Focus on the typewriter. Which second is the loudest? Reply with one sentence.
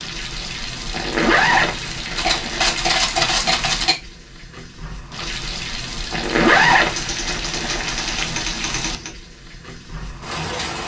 The loudest moment of the typewriter is at 3 seconds.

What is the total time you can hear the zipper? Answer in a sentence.
You can hear the zipper for 4 seconds altogether.